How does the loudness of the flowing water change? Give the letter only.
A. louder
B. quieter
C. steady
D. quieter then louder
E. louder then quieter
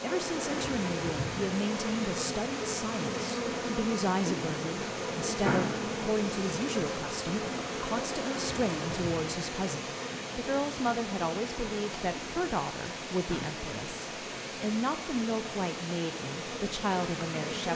C.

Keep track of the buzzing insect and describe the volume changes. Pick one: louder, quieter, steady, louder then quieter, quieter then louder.
quieter.